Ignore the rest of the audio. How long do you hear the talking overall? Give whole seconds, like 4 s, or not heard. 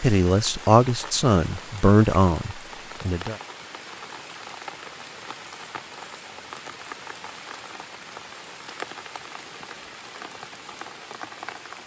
3 s.